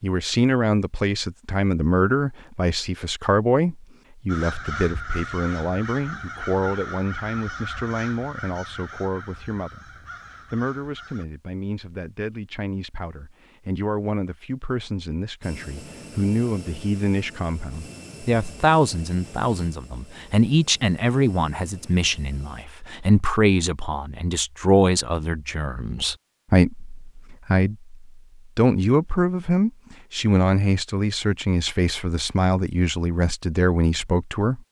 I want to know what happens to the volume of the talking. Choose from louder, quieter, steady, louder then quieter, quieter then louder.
quieter then louder.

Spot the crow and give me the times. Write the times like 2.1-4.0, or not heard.
4.2-11.2.